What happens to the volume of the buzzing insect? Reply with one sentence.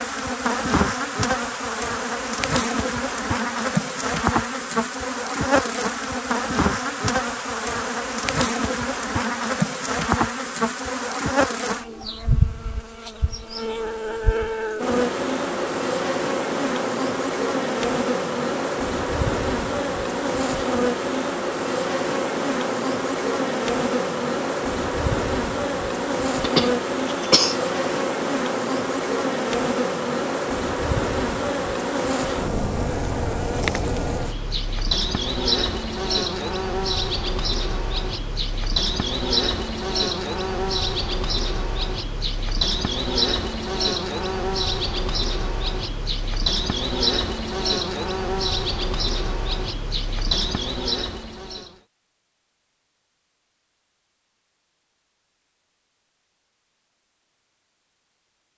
The loudness of the buzzing insect stays about the same.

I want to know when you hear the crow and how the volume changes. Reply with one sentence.
You can't hear the crow here.